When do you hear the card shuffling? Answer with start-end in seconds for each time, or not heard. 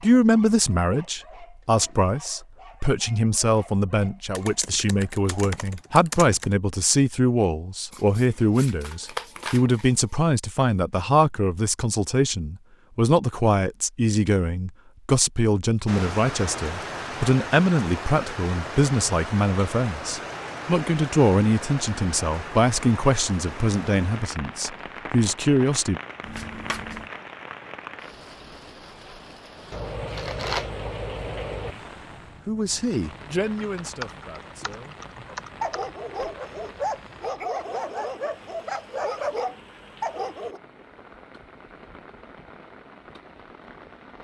7.9-10.1, 26.2-27.1, 29.7-31.8.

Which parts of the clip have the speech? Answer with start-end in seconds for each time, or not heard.
0.0-26.0, 31.6-35.0.